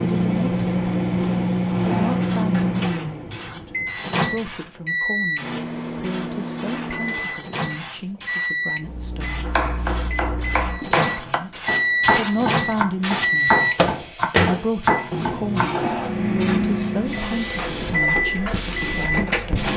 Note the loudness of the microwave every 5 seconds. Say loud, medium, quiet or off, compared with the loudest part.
loud, medium, loud, loud.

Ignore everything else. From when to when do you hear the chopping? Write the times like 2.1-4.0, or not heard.
9.4-15.9.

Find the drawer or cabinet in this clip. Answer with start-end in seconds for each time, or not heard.
1.1-2.9, 15.1-16.8.